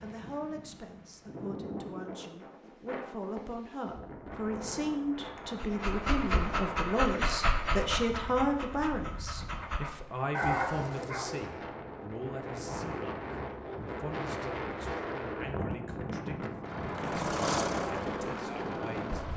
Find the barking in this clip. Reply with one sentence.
The barking can be heard from 5.5 to 11.3 s.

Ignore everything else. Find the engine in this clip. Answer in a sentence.
You can hear the engine from 16.6 to 19.3 s.